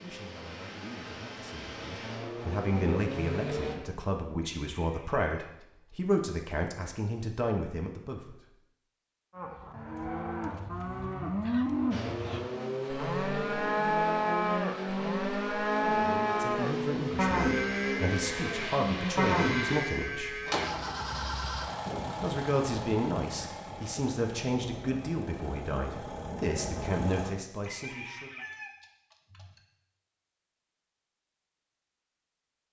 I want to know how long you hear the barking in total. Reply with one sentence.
The barking can't be heard in this clip.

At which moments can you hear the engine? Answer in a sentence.
You can hear the engine from 0.0 to 3.8 s and from 11.9 to 27.3 s.